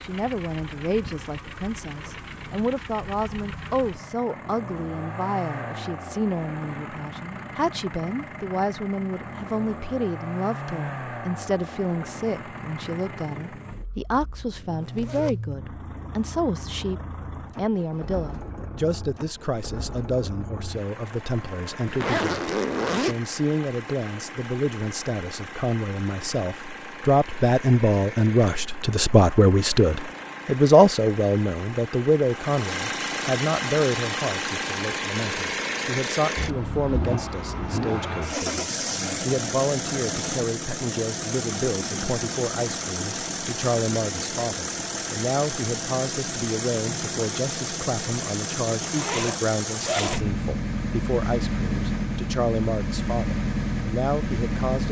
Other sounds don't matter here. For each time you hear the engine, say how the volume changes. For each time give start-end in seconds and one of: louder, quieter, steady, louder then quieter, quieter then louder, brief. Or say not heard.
0.0-54.8 louder.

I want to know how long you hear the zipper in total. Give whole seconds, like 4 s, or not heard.
3 s.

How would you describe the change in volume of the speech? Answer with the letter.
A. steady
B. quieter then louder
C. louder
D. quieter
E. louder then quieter
E.